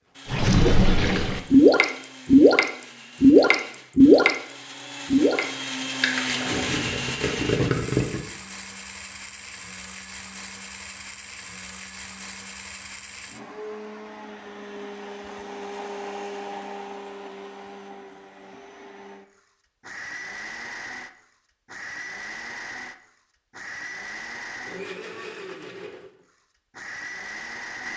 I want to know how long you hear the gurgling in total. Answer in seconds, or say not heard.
8 s.